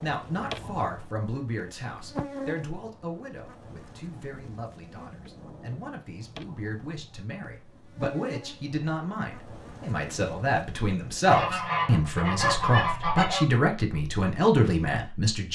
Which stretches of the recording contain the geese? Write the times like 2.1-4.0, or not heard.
11.2-13.4.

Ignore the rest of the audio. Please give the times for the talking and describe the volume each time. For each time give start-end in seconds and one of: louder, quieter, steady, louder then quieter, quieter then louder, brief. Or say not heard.
0.0-15.4 quieter then louder.